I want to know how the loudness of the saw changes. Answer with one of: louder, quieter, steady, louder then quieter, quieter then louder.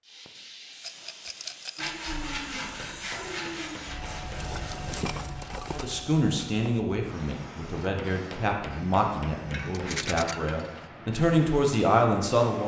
quieter.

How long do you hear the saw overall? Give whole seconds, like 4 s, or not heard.
5 s.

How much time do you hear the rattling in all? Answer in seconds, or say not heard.
3 s.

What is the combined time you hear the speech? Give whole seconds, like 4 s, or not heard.
7 s.